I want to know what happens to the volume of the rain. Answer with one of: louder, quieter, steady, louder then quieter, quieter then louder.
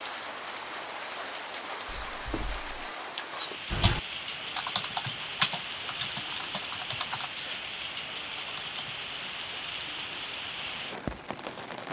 steady.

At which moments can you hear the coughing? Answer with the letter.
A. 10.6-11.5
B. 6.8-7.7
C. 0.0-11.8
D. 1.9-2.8
D.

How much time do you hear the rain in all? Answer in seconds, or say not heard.
12 s.